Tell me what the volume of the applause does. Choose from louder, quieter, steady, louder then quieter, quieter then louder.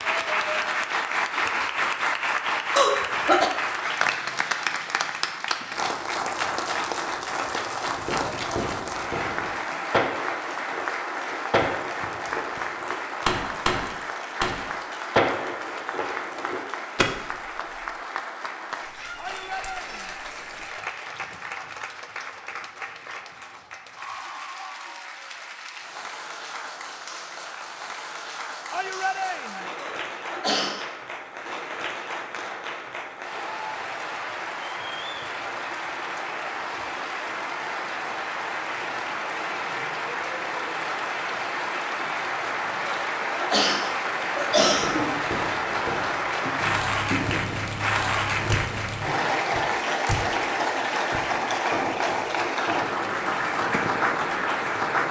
quieter then louder.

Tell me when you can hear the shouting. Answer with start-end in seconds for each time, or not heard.
19.1-20.2, 28.7-29.7.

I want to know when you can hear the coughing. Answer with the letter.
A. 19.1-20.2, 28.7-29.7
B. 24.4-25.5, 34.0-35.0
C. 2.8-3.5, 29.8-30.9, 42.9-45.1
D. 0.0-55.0
C.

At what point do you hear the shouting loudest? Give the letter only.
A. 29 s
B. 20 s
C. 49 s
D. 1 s
A.